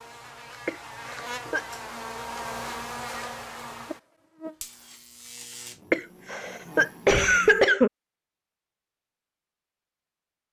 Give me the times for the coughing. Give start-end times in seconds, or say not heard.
0.7-1.6, 5.9-7.9.